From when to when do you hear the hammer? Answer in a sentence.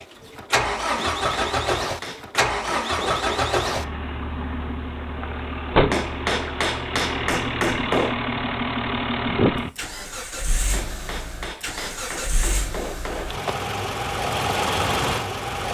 The hammer can be heard from 0.9 to 3.3 s, from 5.9 to 8.2 s and from 10.7 to 13.4 s.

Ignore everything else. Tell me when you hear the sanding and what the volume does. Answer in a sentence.
You can't hear the sanding here.